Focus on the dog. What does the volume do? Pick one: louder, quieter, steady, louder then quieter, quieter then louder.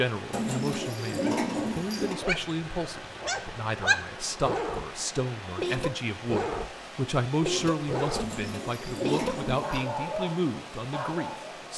steady.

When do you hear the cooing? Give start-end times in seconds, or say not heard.
0.3-2.1, 8.1-9.9.